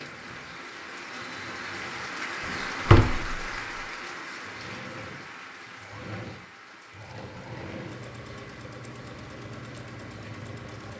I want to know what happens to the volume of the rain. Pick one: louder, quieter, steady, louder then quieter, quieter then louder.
quieter.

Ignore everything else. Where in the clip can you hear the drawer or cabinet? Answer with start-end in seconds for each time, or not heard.
2.5-3.4.